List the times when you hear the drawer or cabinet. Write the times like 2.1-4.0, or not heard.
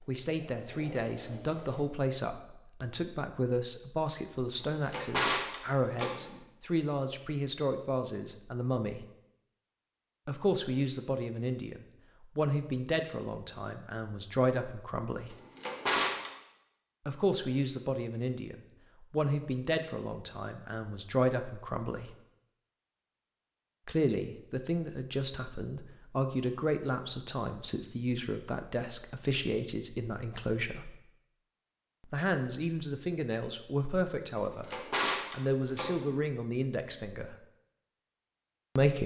4.6-6.4, 15.3-16.3, 34.4-36.1.